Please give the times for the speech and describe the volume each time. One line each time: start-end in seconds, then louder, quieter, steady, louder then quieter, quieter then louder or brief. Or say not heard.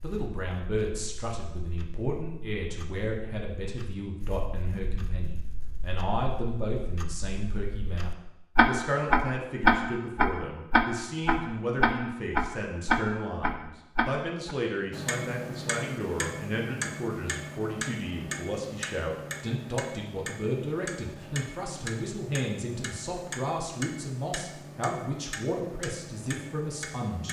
0.0-27.2 steady.